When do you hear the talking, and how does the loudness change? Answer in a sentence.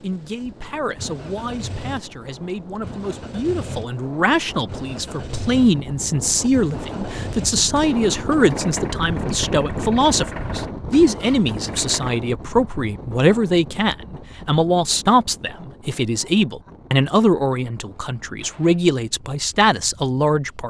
The talking can be heard from 0.0 to 20.6 s, getting louder.